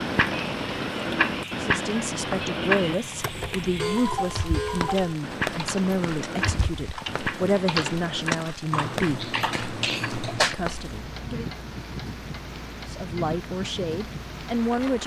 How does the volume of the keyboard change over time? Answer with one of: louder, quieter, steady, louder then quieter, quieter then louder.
louder.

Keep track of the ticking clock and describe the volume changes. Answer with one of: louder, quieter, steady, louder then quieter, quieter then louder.
quieter.